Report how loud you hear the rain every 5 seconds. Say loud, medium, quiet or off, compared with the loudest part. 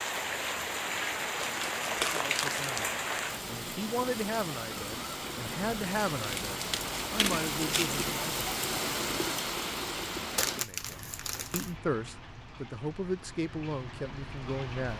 loud, loud, medium.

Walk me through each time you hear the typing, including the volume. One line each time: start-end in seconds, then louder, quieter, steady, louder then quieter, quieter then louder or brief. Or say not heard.
not heard.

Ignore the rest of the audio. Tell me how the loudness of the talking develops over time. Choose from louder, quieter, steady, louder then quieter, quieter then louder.
steady.